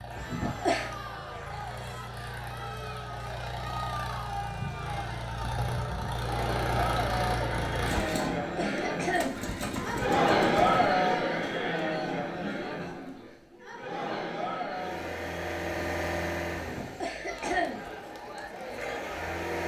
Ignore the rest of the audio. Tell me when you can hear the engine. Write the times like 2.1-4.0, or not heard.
0.0-11.1, 14.7-19.6.